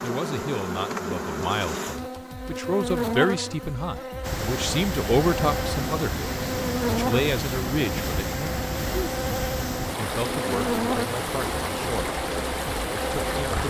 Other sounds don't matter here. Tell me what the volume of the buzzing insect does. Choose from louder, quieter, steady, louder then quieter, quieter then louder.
steady.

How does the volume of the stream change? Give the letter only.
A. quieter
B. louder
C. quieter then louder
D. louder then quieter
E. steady
E.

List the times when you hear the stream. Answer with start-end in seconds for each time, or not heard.
4.2-13.6.